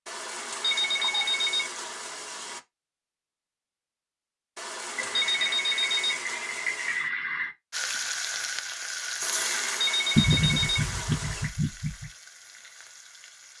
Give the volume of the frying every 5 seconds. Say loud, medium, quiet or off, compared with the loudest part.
off, loud, quiet.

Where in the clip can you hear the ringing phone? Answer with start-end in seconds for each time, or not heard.
0.1-2.6, 4.5-7.0, 9.2-11.5.